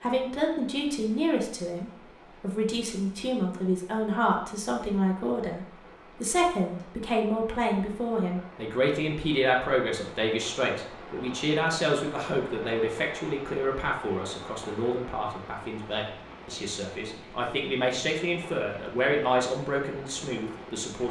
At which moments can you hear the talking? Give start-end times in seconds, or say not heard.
0.0-21.0.